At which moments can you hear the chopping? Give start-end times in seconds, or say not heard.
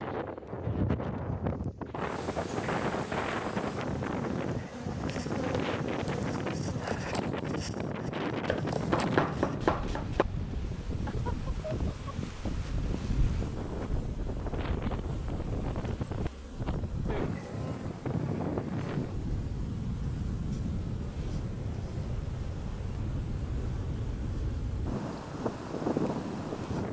8.4-10.2.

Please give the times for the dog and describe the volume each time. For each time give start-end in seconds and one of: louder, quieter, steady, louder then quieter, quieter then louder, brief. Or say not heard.
not heard.